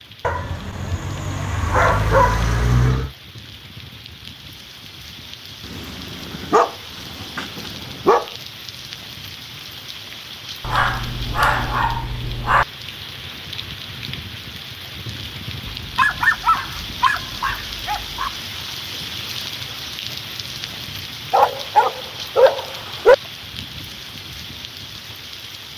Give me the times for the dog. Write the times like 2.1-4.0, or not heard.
0.2-3.1, 5.7-8.3, 10.6-12.7, 15.8-18.3, 21.3-23.1.